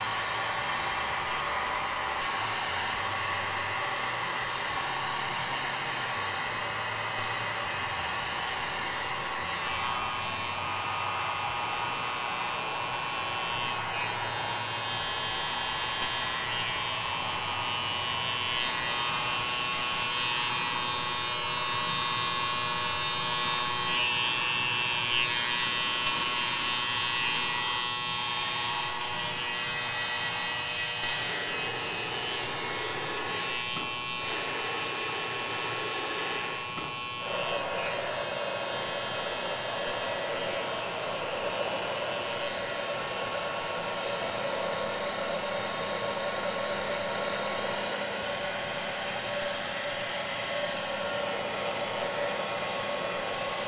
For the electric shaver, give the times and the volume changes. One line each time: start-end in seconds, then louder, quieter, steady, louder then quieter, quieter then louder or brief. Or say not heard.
0.0-53.6 louder then quieter.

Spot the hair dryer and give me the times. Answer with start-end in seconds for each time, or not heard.
0.0-53.6.